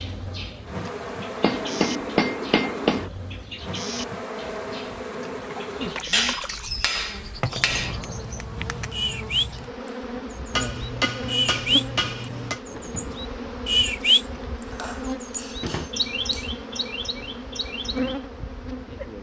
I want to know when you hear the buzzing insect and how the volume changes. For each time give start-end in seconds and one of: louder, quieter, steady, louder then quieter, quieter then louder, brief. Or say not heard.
0.0-19.1 steady.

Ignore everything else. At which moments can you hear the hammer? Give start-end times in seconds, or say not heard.
1.4-3.1, 6.1-8.1, 10.5-12.6, 14.7-16.5.